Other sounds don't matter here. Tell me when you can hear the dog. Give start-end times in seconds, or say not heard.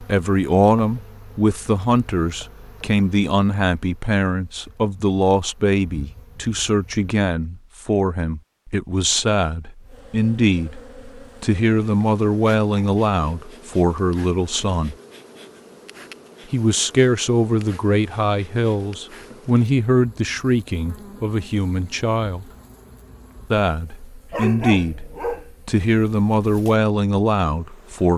24.3-25.5.